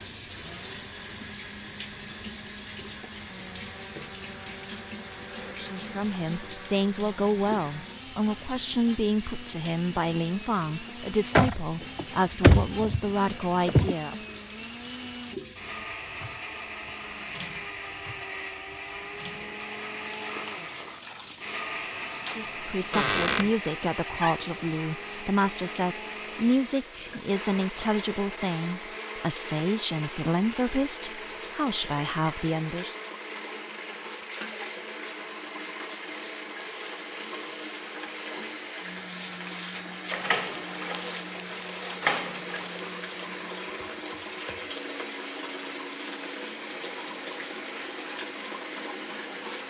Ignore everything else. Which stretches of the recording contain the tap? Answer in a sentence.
You can hear the tap from 0.0 to 49.6 s.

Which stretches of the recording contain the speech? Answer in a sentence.
You can hear the speech from 5.5 to 14.2 s and from 22.2 to 33.0 s.